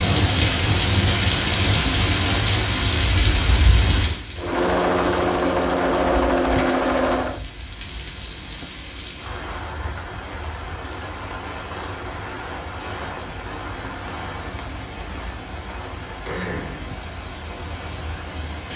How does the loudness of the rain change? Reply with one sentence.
The volume of the rain goes down.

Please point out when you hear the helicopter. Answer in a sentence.
The helicopter can be heard from 4.3 to 7.4 s.